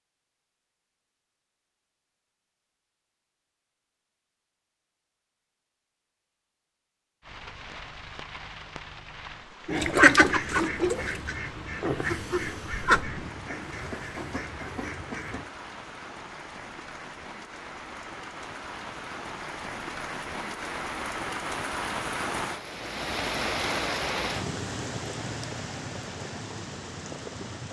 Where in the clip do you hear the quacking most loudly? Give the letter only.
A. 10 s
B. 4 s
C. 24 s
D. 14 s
A.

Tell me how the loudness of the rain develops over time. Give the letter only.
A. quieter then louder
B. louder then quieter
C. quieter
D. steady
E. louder
E.